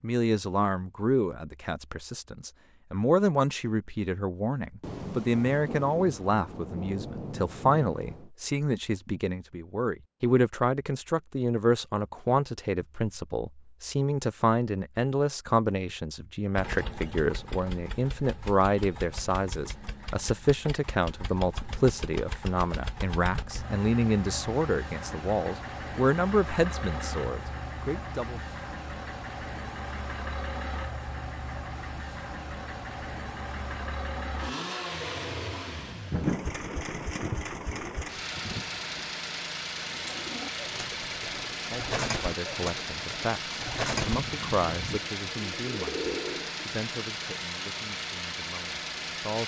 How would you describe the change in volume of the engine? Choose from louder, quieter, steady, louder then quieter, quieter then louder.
louder.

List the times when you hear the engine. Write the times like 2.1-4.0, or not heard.
16.6-49.4.